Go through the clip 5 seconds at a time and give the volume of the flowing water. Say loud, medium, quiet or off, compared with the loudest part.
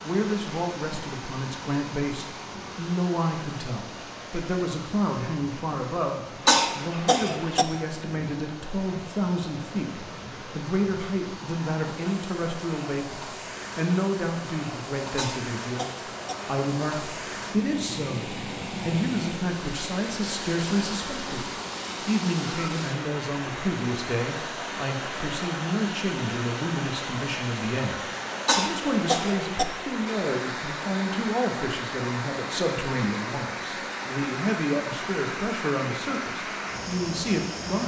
medium, medium, medium, loud, loud, loud, loud, loud.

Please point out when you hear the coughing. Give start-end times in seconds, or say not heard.
6.5-7.7, 15.2-16.4, 28.4-29.6.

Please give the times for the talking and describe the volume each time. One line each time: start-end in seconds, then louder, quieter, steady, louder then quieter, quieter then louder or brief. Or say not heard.
0.0-37.8 steady.